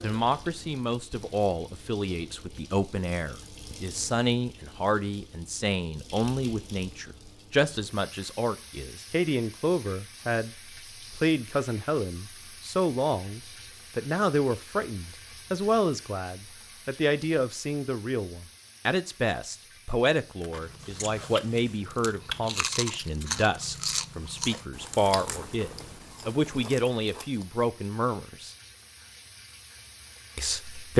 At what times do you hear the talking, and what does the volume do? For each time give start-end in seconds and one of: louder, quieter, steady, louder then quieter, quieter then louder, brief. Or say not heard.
0.0-28.6 steady
30.4-30.9 brief.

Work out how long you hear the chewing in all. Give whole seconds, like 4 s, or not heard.
7 s.